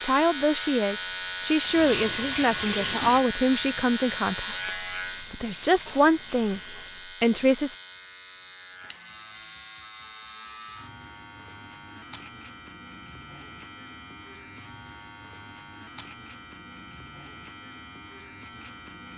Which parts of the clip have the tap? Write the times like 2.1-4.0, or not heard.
1.6-7.2.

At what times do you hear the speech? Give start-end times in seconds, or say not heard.
0.0-6.6, 7.2-7.8.